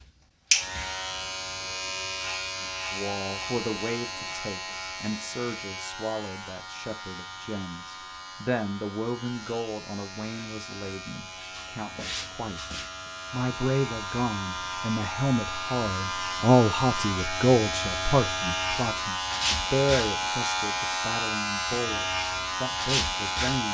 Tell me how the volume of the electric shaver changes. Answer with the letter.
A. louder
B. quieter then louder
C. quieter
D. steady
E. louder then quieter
B.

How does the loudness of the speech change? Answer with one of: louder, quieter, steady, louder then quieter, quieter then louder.
louder then quieter.